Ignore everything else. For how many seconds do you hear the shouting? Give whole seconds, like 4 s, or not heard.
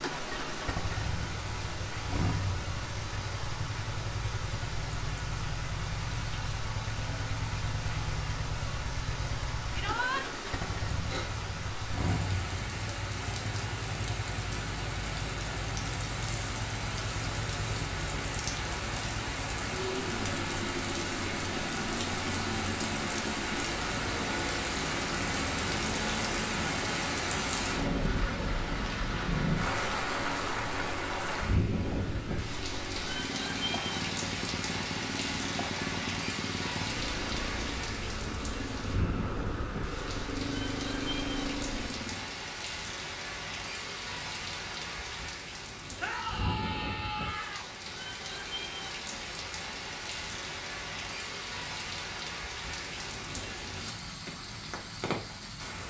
2 s.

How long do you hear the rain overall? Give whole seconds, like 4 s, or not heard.
56 s.